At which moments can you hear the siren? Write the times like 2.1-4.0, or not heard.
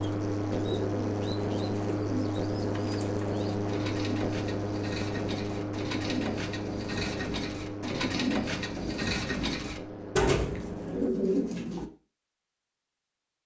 not heard.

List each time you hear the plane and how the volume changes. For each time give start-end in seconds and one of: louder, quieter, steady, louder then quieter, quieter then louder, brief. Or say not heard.
0.0-11.1 quieter.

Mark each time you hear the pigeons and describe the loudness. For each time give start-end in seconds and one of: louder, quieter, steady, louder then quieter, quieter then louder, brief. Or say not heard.
0.0-11.9 louder.